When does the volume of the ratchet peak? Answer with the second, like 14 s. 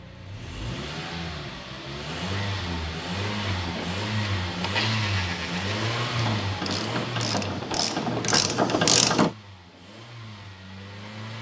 9 s.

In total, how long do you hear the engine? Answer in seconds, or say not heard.
11 s.